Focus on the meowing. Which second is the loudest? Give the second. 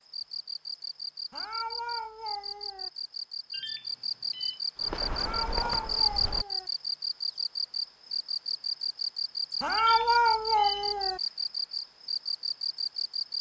10 s.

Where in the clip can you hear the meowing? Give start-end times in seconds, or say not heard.
1.3-2.9, 5.1-6.7, 9.6-11.2.